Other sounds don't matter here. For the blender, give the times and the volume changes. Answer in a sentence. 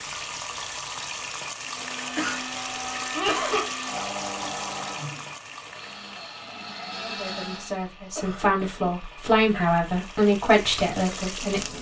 The blender can be heard from 1.8 to 7.9 s, getting quieter then louder.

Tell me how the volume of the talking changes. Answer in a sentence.
The volume of the talking goes up.